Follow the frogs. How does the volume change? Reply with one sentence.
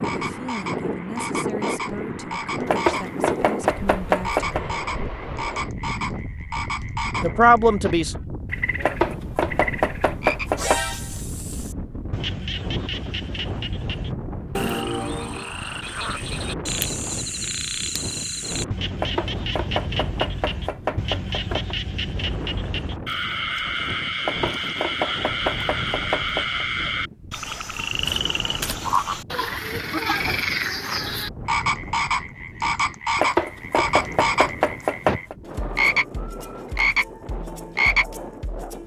The volume of the frogs goes up.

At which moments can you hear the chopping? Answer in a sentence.
You can hear the chopping from 2.6 to 4.6 s, from 8.8 to 10.8 s, from 18.9 to 21.8 s, from 24.2 to 26.6 s and from 33.1 to 35.4 s.